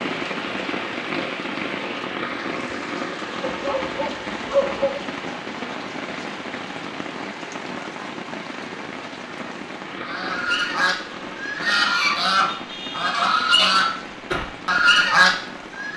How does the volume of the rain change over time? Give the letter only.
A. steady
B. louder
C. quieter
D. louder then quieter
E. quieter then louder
C.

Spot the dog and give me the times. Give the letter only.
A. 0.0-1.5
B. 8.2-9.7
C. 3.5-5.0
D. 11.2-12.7
C.